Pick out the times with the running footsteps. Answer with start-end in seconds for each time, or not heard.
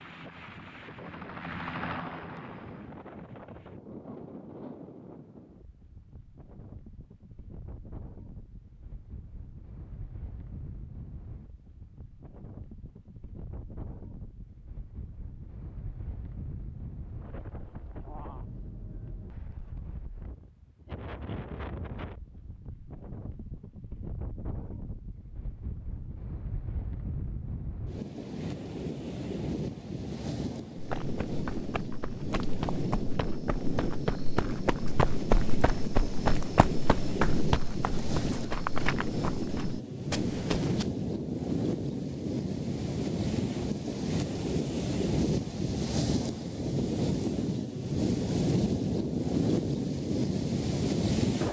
30.8-40.9.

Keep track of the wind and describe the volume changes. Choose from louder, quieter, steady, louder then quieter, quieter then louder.
louder.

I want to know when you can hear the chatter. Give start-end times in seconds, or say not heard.
not heard.